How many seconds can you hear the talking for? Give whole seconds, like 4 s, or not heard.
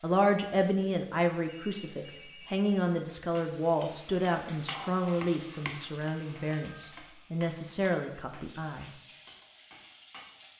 9 s.